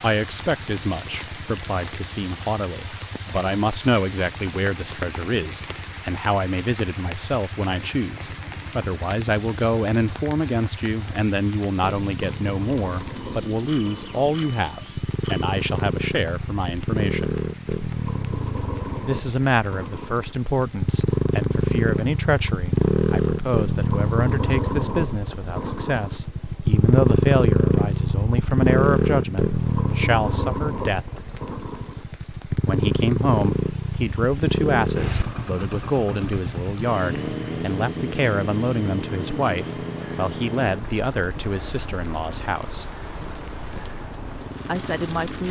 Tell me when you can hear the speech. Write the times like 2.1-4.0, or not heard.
0.0-17.4, 19.1-31.2, 32.6-42.9, 44.5-45.4.